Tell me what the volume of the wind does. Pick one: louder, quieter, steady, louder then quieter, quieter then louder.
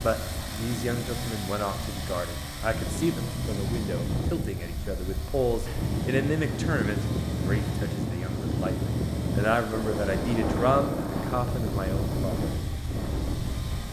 louder.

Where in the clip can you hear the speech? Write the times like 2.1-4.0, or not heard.
0.0-12.5.